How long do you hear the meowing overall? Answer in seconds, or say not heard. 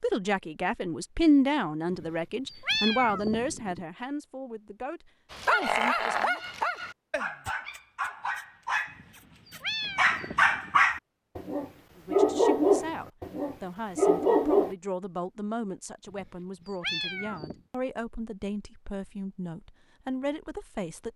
5 s.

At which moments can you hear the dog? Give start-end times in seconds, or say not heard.
5.3-14.8.